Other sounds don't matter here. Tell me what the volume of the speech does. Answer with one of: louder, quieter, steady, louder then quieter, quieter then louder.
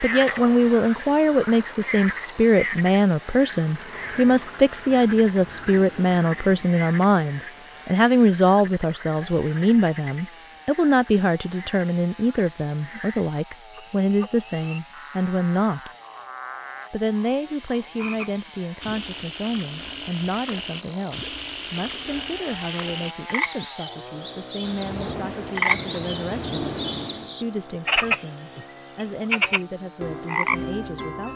quieter.